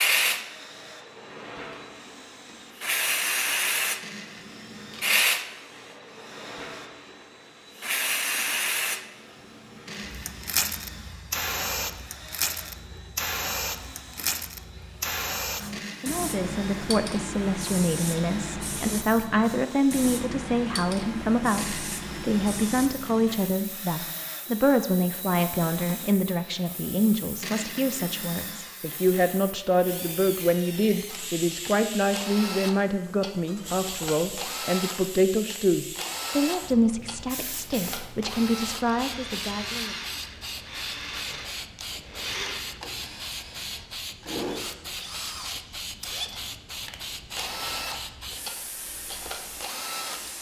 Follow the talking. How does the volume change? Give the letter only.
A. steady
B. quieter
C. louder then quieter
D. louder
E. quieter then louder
A.